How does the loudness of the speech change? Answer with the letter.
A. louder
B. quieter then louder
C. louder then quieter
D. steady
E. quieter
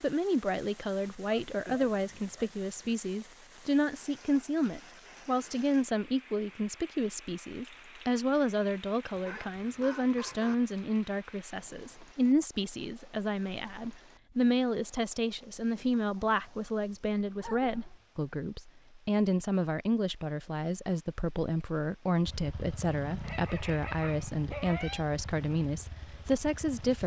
D.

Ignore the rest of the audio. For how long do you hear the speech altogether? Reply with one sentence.
You can hear the speech for 27 seconds altogether.